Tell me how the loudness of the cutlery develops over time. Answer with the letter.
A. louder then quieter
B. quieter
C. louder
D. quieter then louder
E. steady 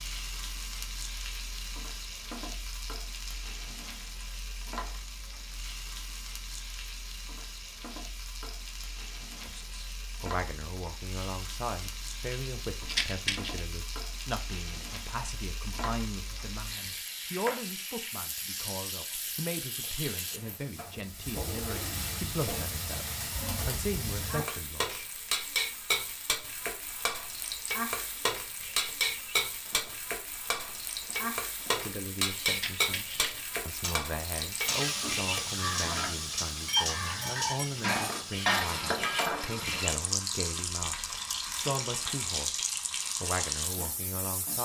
C.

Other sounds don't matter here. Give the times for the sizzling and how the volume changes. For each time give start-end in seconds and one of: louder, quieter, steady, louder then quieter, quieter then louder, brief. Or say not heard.
0.0-44.5 louder.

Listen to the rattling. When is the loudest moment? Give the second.
13 s.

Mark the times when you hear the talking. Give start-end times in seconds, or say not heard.
9.4-25.0, 31.8-44.5.